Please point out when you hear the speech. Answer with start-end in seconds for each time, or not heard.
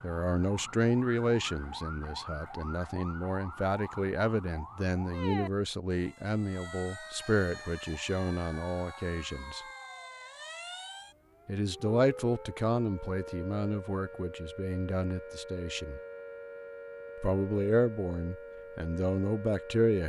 0.0-9.6, 11.4-16.0, 17.2-20.0.